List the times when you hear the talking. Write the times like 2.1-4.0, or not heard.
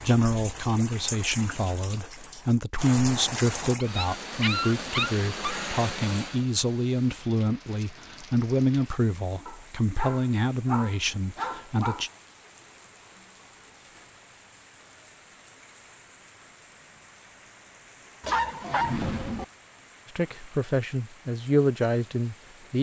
0.0-12.1, 20.1-22.7.